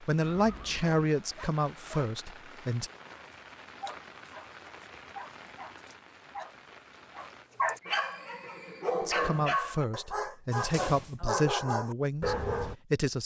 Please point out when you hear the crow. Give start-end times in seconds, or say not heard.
not heard.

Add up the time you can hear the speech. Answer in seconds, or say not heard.
7 s.